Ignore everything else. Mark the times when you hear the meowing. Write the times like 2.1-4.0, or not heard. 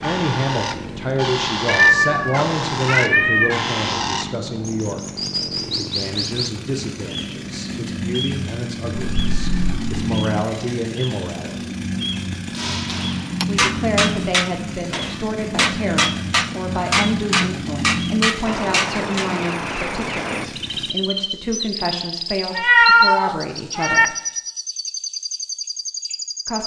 1.6-3.6, 9.0-10.1, 22.5-24.1.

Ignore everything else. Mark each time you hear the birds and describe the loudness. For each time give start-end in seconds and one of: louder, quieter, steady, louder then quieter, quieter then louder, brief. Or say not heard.
0.0-26.6 steady.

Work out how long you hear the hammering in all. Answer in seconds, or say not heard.
7 s.